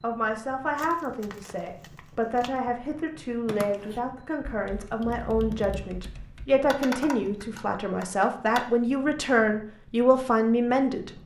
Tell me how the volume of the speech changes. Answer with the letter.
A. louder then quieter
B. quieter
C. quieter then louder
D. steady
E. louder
E.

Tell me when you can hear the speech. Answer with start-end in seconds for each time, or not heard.
0.0-11.1.